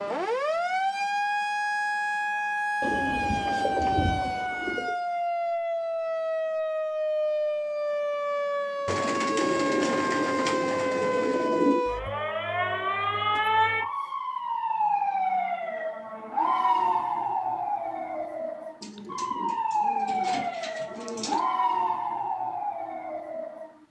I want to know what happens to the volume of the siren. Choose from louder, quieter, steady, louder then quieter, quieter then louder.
steady.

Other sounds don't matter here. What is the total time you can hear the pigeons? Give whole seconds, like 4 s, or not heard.
8 s.